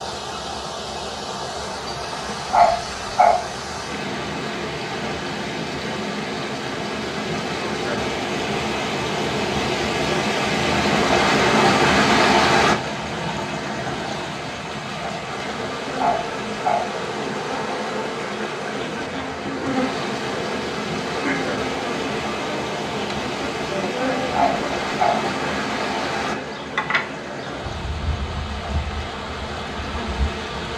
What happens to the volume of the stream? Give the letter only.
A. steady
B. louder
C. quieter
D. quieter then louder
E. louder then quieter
E.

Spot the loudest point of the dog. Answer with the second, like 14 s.
3 s.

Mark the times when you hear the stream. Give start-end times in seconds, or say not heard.
0.0-30.7.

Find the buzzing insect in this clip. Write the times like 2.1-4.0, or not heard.
15.2-30.7.